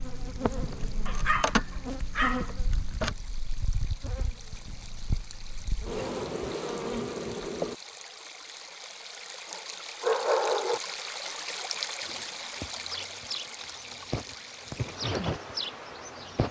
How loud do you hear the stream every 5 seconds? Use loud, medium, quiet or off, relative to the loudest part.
quiet, medium, loud, medium.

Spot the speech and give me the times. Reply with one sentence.
The speech can't be heard in this clip.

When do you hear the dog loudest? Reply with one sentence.
The loudest moment of the dog is at 10 seconds.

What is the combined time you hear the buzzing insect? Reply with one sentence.
The buzzing insect can be heard for 12 seconds in total.